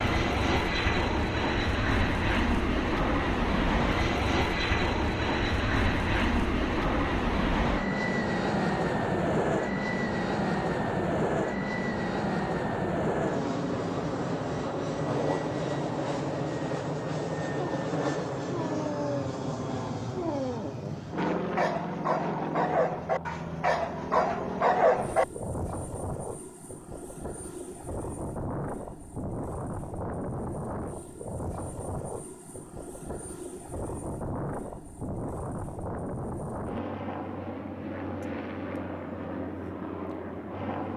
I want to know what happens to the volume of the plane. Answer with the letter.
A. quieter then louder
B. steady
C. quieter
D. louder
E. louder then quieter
C.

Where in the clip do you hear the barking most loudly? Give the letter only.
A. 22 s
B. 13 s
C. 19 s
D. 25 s
D.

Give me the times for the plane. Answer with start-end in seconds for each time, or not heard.
0.0-40.9.